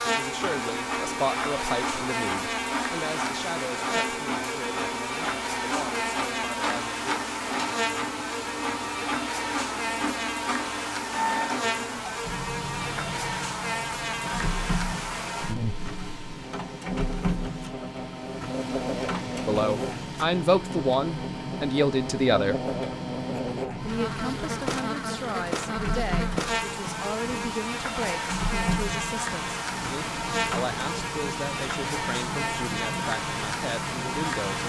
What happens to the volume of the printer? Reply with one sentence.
The volume of the printer stays about the same.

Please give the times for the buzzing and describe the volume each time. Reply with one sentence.
The buzzing can be heard from 0.0 to 34.6 s, at a steady volume.